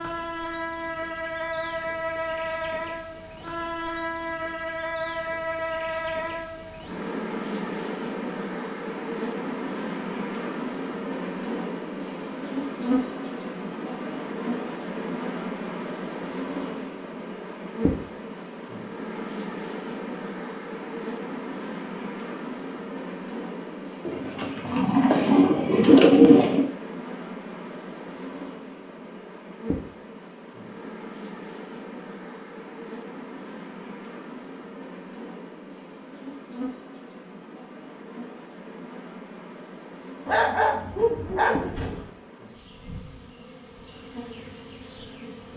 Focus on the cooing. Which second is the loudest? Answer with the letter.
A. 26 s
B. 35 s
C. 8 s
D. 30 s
A.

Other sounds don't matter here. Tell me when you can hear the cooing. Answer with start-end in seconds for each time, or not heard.
24.1-26.6.